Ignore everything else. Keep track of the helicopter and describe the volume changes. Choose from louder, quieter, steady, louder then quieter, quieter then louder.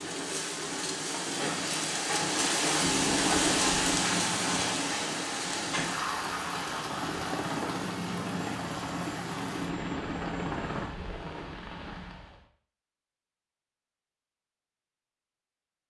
quieter then louder.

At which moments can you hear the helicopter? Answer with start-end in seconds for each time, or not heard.
2.8-10.9.